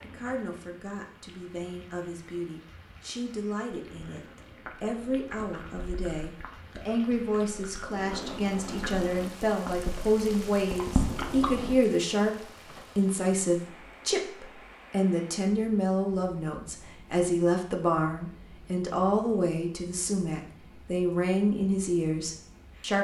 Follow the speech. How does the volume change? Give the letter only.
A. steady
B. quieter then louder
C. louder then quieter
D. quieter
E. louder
E.